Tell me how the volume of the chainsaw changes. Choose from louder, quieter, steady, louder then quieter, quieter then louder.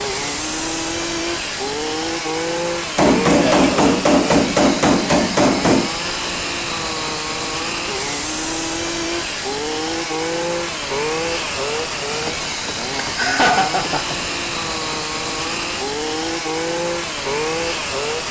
steady.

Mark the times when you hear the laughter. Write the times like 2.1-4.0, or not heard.
13.0-14.2.